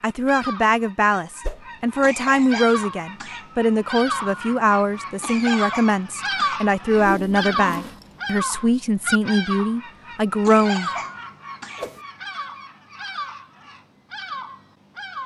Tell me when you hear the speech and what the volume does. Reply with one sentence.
The speech can be heard from 0.0 to 10.9 s, at a steady volume.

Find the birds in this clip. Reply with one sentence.
The birds can be heard from 0.0 to 15.2 s.